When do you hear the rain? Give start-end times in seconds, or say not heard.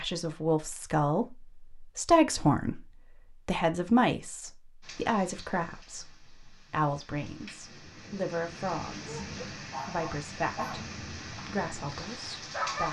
4.8-12.8.